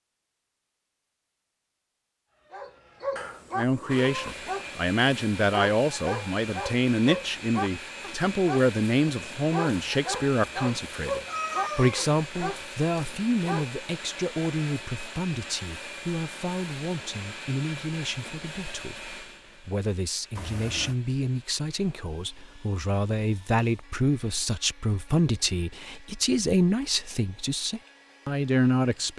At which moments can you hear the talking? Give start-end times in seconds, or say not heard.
3.5-29.1.